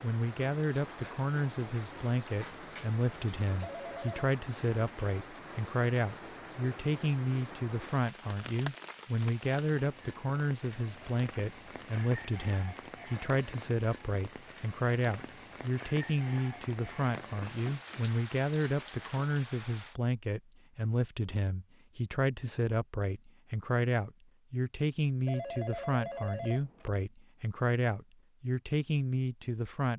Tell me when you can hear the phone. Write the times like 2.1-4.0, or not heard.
3.6-4.3, 25.2-26.9.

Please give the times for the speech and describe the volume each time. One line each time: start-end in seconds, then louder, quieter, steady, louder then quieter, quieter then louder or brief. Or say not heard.
0.0-29.9 steady.